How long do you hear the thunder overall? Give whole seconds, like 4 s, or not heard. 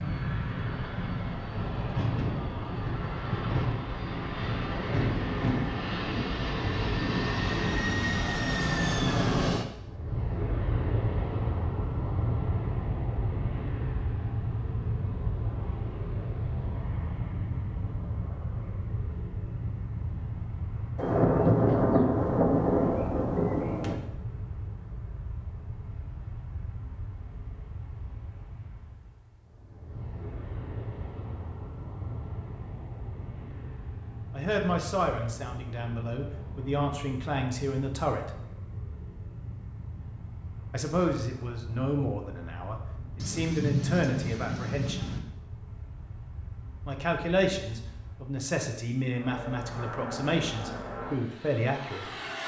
5 s.